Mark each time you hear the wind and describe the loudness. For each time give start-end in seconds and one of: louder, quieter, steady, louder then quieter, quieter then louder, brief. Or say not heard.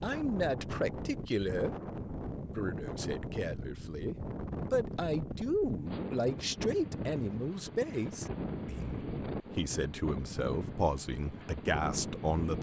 0.0-12.5 steady.